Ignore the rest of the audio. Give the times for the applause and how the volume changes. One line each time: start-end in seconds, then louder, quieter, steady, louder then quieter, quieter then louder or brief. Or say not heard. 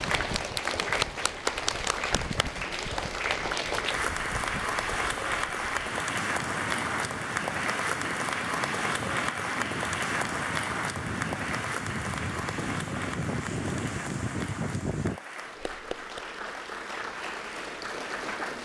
0.0-18.6 quieter.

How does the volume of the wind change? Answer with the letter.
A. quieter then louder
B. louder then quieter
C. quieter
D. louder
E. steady
D.